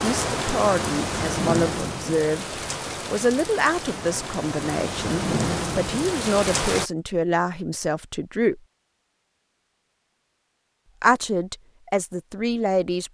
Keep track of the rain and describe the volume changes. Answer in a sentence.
The volume of the rain goes down, then up.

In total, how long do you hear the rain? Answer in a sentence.
You can hear the rain for 7 seconds altogether.